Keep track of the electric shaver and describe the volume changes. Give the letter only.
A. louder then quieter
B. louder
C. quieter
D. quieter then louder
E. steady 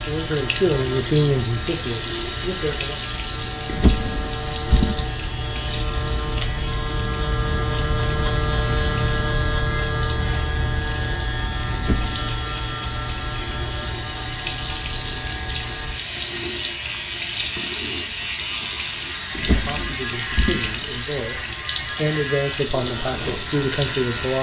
A.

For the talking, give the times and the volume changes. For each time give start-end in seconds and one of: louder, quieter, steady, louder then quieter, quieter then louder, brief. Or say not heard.
0.1-3.0 brief
19.5-24.3 louder.